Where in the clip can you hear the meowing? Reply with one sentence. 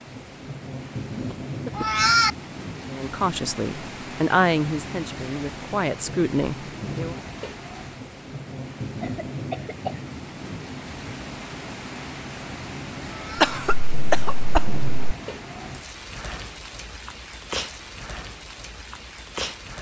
You can hear the meowing from 1.7 to 2.3 s and from 13.1 to 13.6 s.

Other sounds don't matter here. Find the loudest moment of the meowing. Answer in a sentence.
The volume of the meowing peaks at 2 seconds.